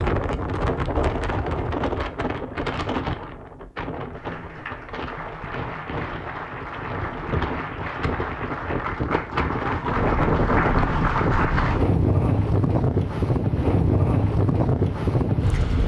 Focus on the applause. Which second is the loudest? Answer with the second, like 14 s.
11 s.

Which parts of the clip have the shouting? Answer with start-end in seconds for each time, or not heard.
not heard.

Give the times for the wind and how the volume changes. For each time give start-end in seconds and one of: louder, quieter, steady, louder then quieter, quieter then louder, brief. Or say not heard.
0.0-15.8 quieter then louder.